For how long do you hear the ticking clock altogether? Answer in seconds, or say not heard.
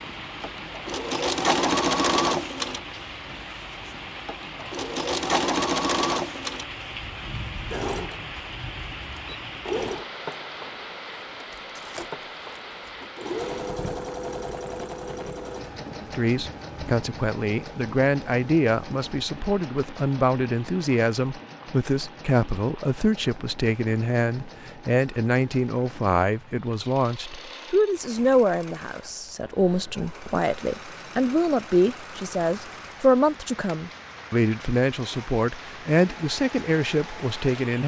not heard.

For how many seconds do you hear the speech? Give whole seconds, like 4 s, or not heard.
22 s.